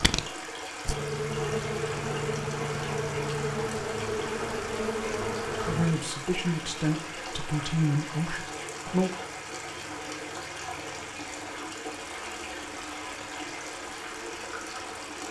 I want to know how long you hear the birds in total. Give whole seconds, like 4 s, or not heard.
not heard.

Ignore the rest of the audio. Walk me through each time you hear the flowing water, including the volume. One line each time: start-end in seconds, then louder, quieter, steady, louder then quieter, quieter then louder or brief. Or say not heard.
0.0-15.2 steady.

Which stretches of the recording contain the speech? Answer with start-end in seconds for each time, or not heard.
5.7-9.1.